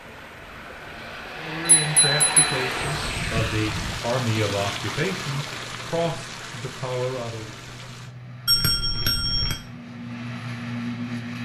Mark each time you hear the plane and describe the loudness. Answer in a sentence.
You can hear the plane from 0.0 to 11.4 s, getting quieter then louder.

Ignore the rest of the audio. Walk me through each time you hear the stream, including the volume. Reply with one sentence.
You can hear the stream from 0.0 to 8.2 s, getting louder then quieter.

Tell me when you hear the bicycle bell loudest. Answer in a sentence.
The volume of the bicycle bell peaks at 9 seconds.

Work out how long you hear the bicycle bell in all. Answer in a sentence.
You can hear the bicycle bell for 2 seconds altogether.